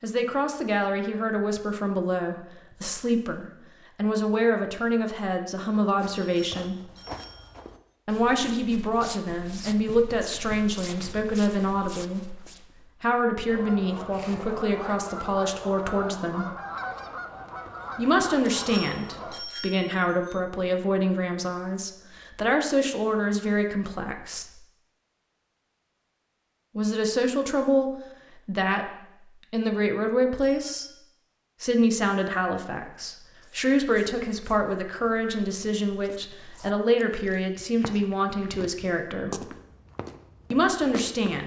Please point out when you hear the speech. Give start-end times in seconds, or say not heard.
0.0-6.8, 8.1-16.5, 17.9-24.6, 26.8-30.9, 31.6-39.5, 40.5-41.4.